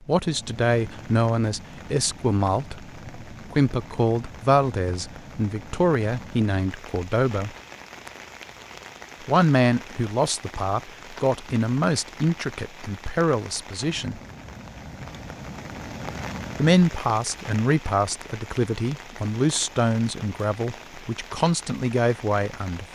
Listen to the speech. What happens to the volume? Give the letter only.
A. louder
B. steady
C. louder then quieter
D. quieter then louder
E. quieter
B.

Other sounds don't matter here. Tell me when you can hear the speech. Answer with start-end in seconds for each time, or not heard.
0.1-7.5, 9.2-14.2, 16.6-22.9.